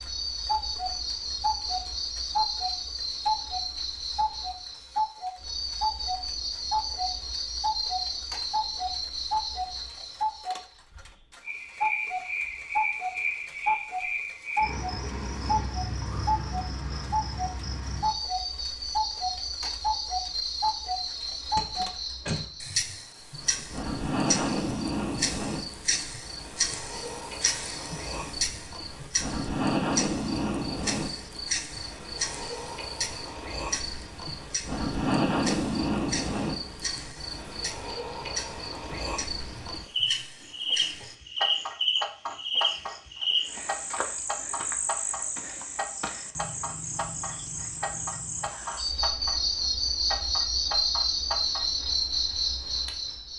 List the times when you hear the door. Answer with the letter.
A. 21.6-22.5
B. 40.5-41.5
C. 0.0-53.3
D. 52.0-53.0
A.